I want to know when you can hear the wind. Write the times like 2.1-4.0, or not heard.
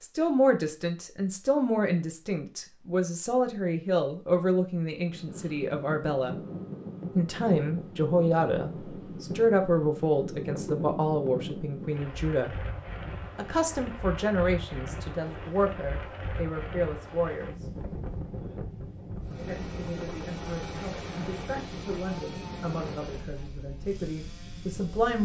5.0-25.1.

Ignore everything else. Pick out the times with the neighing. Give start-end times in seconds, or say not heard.
not heard.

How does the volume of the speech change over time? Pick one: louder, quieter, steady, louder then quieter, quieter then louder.
quieter.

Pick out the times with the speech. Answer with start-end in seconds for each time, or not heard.
0.0-6.4, 7.2-12.6, 13.3-17.7, 19.4-25.1.